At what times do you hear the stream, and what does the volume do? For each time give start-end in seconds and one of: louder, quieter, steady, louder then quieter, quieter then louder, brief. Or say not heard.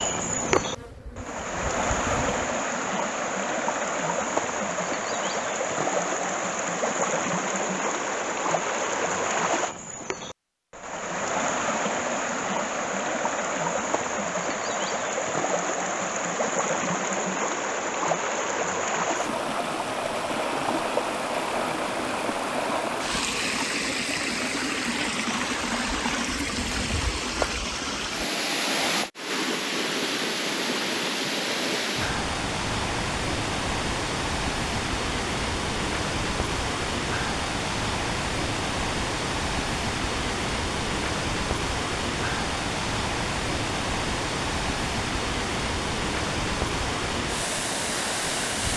0.0-48.7 steady.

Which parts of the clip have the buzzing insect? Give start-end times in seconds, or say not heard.
0.2-2.5.